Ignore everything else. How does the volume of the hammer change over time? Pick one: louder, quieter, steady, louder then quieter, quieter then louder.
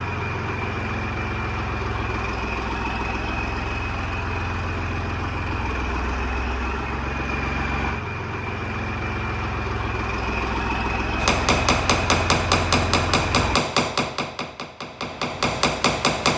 quieter then louder.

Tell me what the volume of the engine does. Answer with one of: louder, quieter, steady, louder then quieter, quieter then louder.
steady.